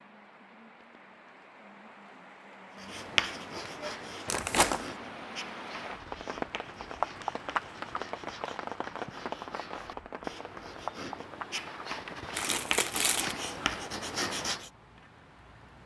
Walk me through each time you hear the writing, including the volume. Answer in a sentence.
You can hear the writing from 2.8 to 14.7 s, getting quieter then louder.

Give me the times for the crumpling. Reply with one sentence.
The crumpling can be heard from 4.3 to 4.9 s and from 12.3 to 13.3 s.